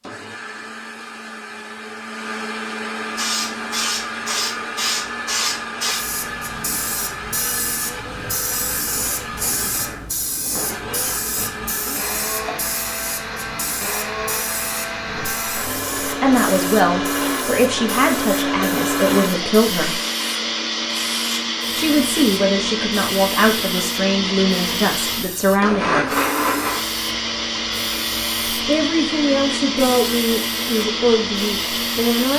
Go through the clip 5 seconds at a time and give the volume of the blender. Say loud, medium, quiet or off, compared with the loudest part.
medium, medium, medium, loud, loud, loud, loud.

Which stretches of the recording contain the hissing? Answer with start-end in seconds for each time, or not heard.
3.1-32.3.